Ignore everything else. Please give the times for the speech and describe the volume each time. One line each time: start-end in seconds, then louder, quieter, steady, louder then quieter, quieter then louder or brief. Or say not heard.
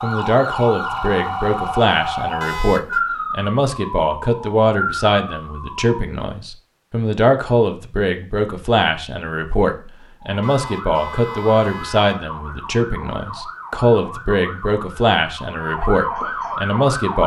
0.0-17.2 steady.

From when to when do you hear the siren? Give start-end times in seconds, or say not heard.
0.0-6.0, 10.2-17.2.